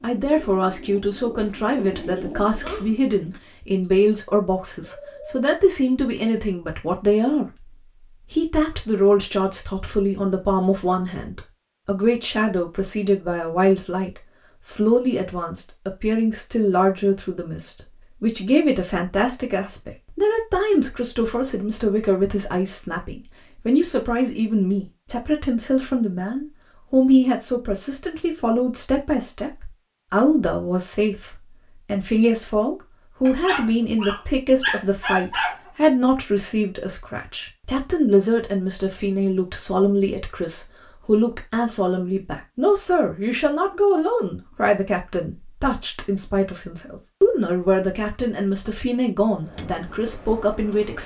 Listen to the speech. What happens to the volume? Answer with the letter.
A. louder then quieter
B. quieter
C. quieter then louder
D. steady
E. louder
D.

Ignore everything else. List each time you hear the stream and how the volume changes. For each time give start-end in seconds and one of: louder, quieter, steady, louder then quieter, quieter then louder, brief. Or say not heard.
not heard.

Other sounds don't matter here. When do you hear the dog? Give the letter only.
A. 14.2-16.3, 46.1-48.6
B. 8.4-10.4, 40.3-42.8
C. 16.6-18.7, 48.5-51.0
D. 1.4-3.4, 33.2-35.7
D.